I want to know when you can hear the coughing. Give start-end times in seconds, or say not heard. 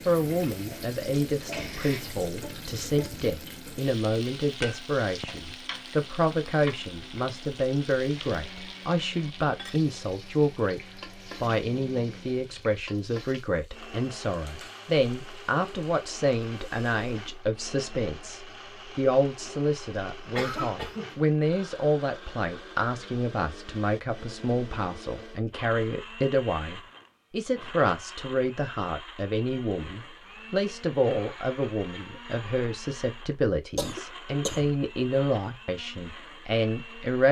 1.5-2.1, 20.4-21.2, 33.8-34.7.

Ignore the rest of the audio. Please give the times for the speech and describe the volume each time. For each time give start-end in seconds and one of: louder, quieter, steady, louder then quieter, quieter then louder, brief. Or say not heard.
0.1-10.8 steady
11.4-37.2 steady.